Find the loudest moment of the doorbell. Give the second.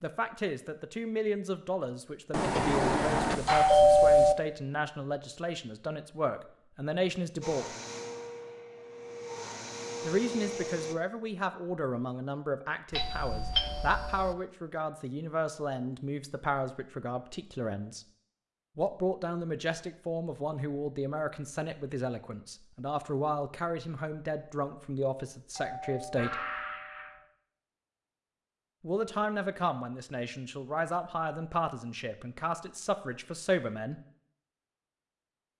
4 s.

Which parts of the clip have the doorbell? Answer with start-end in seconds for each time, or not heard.
2.3-4.3, 12.9-14.3, 25.6-27.2.